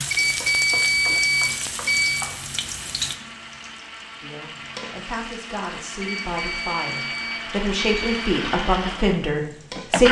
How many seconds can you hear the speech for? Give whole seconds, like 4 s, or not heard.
6 s.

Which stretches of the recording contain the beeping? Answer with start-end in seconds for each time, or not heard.
0.1-2.2, 6.0-8.3.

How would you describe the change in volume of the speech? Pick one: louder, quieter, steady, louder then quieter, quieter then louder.
louder.